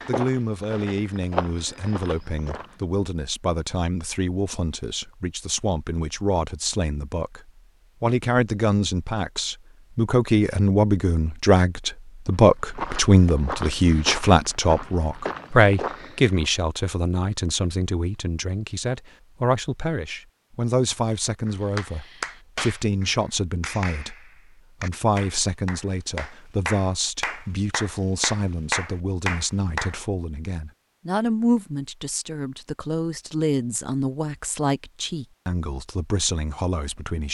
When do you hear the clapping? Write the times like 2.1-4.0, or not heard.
21.4-30.0.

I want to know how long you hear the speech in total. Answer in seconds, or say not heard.
37 s.